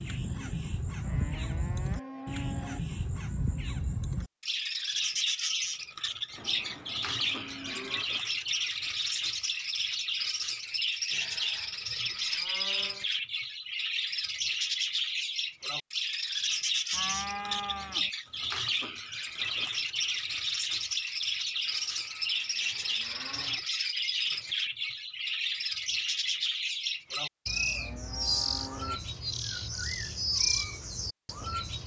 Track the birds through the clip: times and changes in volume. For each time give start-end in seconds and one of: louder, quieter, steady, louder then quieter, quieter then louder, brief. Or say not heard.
0.0-31.8 steady.